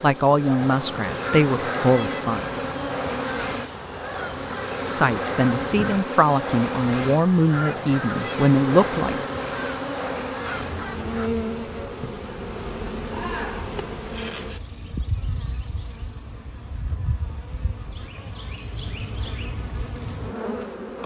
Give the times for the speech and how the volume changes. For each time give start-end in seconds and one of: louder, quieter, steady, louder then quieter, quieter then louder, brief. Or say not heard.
0.0-2.5 brief
4.9-9.2 steady.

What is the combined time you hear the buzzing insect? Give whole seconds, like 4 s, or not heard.
21 s.